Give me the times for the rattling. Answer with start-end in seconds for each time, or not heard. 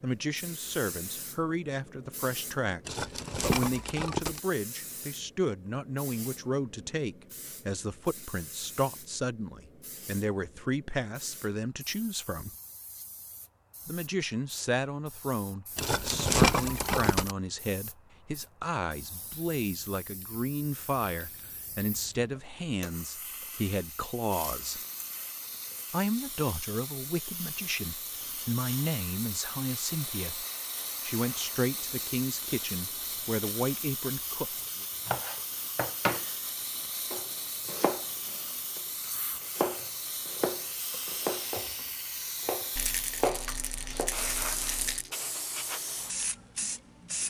2.9-4.4, 15.8-17.4, 42.8-45.1.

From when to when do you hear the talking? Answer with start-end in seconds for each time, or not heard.
0.0-12.6, 13.8-24.8, 25.9-30.4, 31.1-34.9.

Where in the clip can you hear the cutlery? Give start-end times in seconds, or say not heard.
not heard.